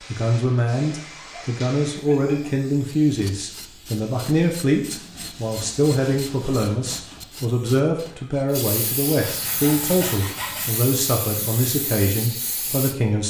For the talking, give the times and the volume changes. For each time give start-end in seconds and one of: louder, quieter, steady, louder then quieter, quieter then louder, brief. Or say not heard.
0.1-13.2 steady.